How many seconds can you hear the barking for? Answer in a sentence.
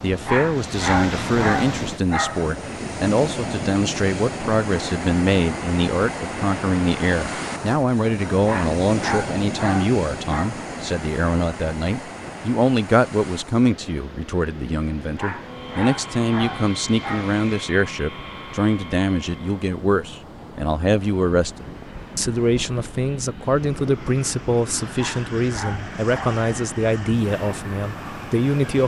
You can hear the barking for 8 seconds altogether.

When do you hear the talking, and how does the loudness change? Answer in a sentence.
The talking can be heard from 0.0 to 28.8 s, at a steady volume.